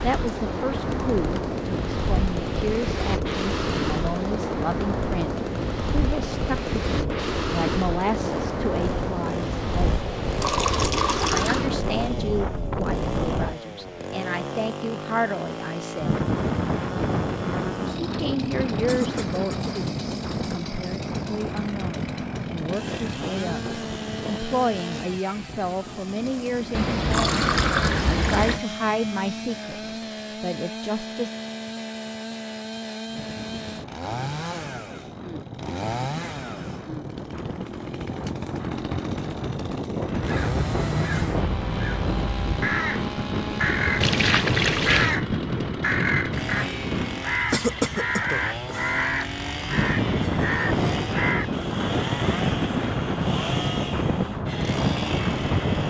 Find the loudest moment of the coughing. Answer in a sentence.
The loudest moment of the coughing is at 48 seconds.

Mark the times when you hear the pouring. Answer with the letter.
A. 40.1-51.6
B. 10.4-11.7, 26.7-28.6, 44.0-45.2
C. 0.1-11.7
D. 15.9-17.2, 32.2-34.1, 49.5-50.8
B.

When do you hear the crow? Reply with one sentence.
You can hear the crow from 40.1 to 51.6 s.